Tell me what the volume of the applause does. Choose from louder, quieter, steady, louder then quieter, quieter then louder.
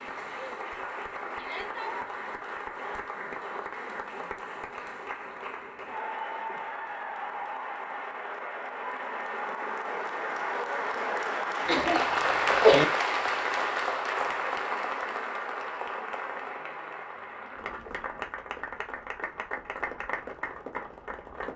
louder then quieter.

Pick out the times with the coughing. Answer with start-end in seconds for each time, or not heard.
11.7-12.8.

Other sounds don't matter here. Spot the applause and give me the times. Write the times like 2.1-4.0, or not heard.
0.0-21.5.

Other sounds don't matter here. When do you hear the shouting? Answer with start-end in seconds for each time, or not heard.
1.4-2.0.